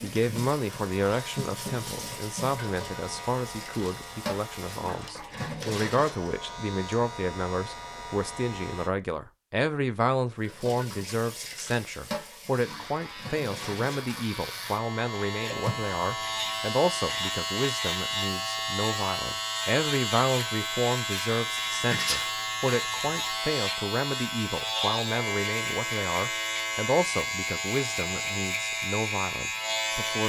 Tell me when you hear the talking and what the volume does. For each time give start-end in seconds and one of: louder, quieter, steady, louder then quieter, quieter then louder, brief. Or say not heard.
0.0-30.2 steady.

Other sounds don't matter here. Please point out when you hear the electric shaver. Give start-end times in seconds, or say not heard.
0.0-8.9, 12.6-30.2.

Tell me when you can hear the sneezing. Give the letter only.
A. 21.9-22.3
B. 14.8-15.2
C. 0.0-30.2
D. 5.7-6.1
A.